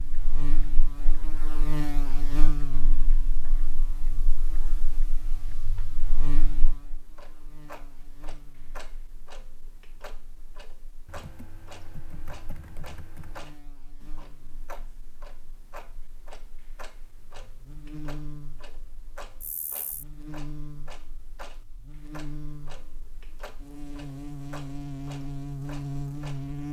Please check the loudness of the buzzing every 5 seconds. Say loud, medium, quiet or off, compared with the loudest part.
medium, quiet, quiet, quiet, medium, loud.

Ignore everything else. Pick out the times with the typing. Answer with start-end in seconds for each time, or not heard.
11.1-13.6.